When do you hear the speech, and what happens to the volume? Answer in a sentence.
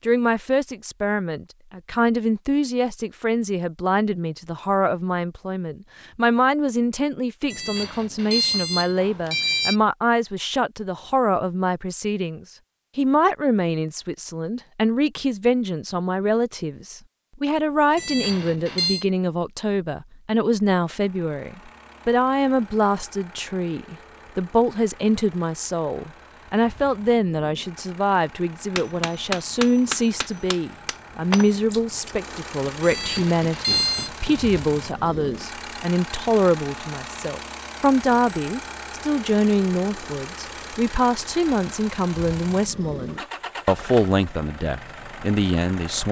The speech can be heard from 0.1 to 46.0 s, at a steady volume.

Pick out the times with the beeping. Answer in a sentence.
You can hear the beeping from 7.5 to 9.8 s, from 17.9 to 19.1 s and from 32.8 to 34.1 s.